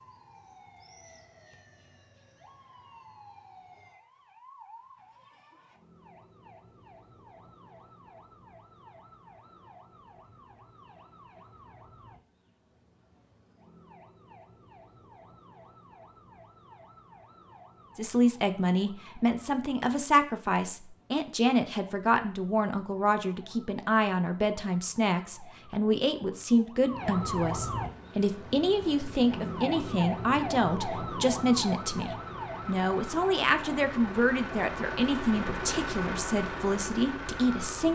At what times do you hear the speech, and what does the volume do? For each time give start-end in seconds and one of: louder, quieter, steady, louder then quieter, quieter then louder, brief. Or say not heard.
17.9-37.8 steady.